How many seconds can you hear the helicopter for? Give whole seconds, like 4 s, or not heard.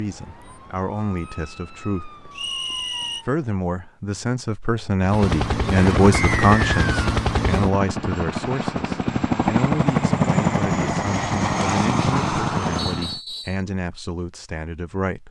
8 s.